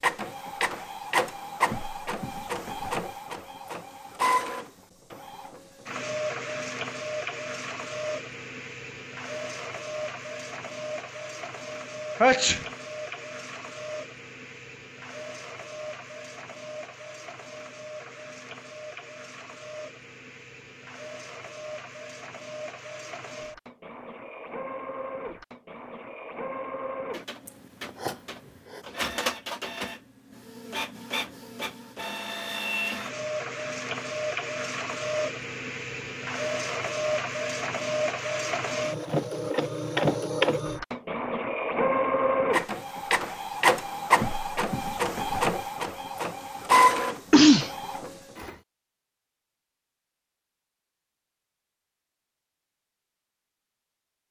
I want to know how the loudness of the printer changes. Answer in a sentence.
The loudness of the printer goes down, then up.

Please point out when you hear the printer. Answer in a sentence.
The printer can be heard from 0.0 to 48.5 s.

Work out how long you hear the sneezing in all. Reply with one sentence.
The sneezing can be heard for 2 seconds in total.